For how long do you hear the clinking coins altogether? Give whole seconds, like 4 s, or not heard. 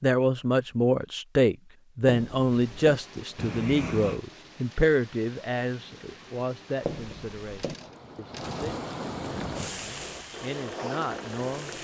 2 s.